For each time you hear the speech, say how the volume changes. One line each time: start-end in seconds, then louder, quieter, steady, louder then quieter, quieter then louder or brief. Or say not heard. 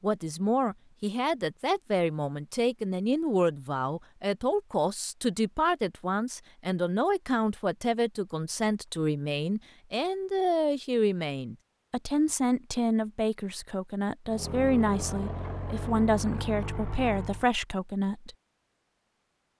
0.0-18.4 steady.